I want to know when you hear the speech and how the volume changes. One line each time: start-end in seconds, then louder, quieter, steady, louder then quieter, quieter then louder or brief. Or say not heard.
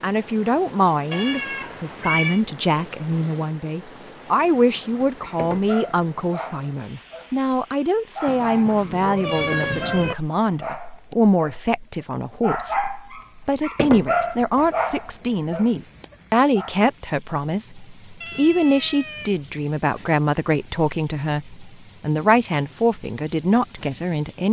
0.0-24.4 steady.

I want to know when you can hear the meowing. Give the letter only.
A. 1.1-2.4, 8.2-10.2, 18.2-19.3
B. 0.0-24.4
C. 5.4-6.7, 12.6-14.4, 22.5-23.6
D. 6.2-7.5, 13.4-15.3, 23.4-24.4
A.